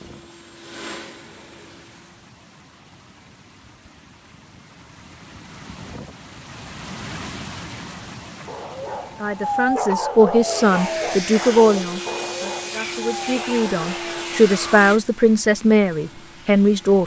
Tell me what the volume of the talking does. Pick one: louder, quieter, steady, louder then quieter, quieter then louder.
quieter then louder.